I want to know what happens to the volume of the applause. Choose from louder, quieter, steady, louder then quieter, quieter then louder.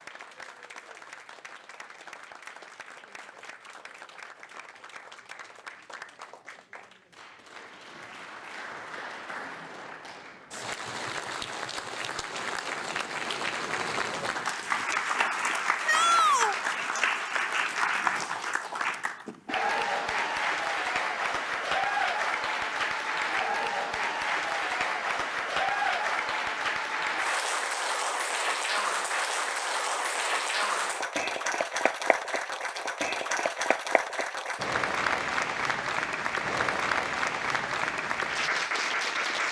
louder.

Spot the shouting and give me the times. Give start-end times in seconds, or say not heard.
15.8-16.6.